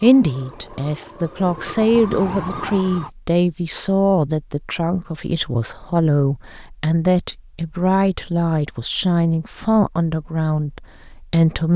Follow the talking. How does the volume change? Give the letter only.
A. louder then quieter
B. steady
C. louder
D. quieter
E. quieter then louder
B.